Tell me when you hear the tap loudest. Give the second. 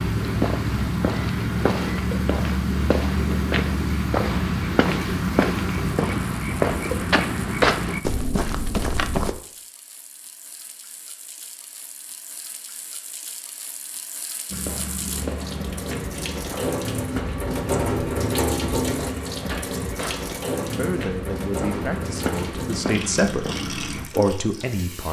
18 s.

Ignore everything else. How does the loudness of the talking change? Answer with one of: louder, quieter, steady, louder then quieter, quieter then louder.
louder.